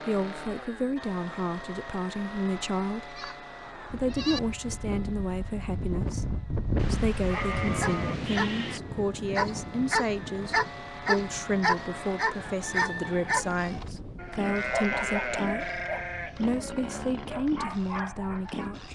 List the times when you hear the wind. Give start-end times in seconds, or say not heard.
3.5-18.8.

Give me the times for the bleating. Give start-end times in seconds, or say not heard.
3.1-4.4, 6.8-8.8, 14.2-17.0.